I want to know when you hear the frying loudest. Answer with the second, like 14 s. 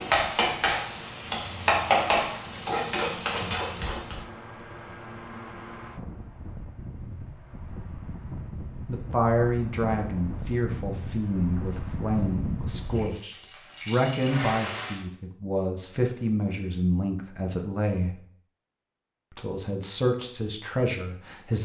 2 s.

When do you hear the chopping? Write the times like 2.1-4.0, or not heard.
not heard.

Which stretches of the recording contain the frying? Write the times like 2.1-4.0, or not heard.
0.0-4.2, 12.8-15.0.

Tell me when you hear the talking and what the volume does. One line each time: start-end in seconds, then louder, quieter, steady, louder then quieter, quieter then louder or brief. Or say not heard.
8.8-18.2 steady
19.3-21.6 brief.